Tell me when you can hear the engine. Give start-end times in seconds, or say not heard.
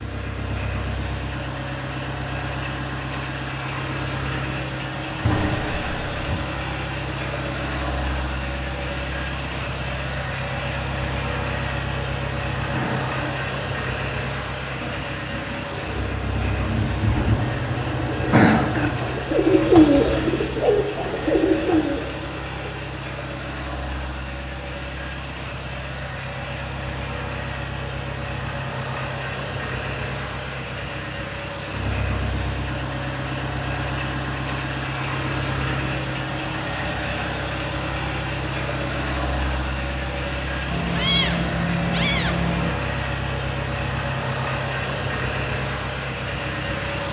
0.0-47.0.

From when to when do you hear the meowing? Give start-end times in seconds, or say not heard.
5.2-6.5, 17.1-19.1, 40.7-42.7.